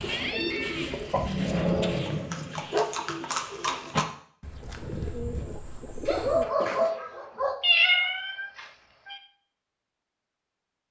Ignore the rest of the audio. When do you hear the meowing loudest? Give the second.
8 s.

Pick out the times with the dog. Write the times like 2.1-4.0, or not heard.
1.1-2.9, 6.0-7.5.